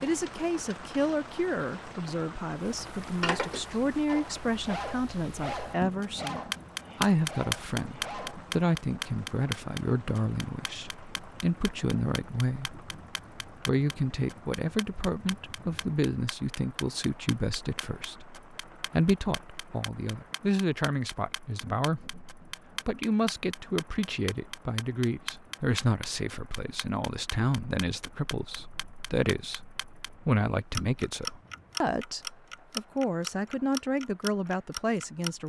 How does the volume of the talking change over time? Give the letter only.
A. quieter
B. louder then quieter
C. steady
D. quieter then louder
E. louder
C.